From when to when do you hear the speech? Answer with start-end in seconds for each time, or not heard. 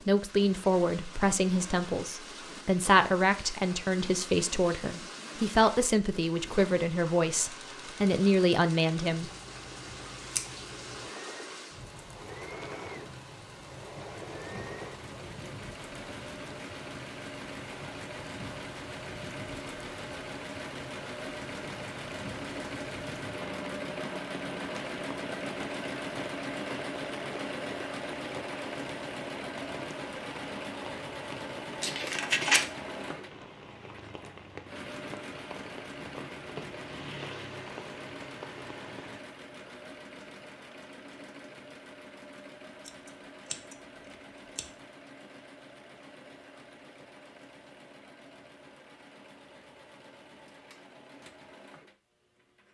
0.1-9.3.